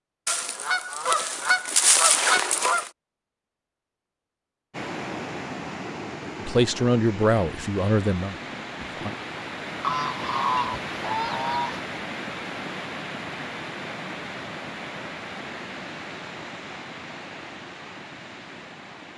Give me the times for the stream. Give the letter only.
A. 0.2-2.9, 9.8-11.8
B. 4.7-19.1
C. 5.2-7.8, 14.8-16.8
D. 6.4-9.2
B.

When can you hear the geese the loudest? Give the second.
2 s.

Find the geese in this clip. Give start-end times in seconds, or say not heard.
0.2-2.9, 9.8-11.8.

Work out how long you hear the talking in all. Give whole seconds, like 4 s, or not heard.
3 s.